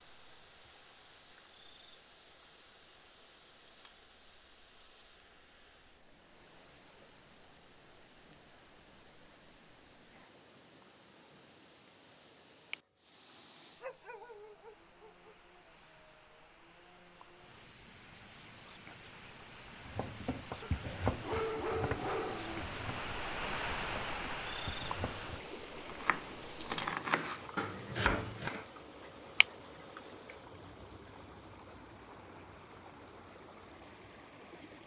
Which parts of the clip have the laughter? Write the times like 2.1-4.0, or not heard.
not heard.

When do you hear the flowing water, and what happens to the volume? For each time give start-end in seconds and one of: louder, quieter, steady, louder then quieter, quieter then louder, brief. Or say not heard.
0.0-34.8 louder then quieter.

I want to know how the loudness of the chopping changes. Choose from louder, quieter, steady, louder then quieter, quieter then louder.
quieter then louder.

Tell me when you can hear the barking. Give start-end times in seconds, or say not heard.
13.8-15.3, 20.6-22.6.